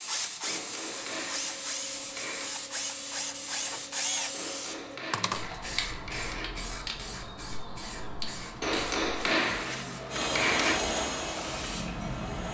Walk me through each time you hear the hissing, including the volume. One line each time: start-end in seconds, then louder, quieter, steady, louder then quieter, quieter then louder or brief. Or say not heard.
0.0-12.5 steady.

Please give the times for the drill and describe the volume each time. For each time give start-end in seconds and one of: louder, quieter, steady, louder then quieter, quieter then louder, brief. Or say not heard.
0.0-5.6 steady
10.1-12.5 brief.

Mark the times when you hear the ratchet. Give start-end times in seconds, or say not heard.
not heard.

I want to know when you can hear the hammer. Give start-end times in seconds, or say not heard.
0.4-2.5, 4.3-6.5, 8.6-10.8.